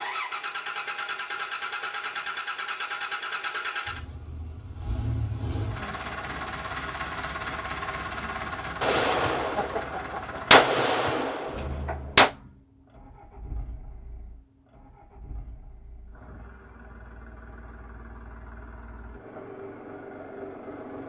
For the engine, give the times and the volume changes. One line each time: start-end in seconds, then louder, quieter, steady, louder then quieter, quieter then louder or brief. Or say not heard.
0.0-21.0 quieter then louder.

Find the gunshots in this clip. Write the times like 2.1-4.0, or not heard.
8.8-12.3.